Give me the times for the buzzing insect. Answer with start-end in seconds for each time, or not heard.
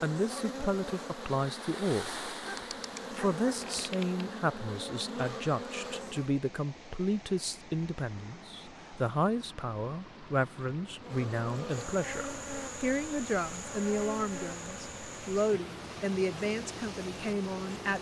0.0-6.3, 11.0-17.9.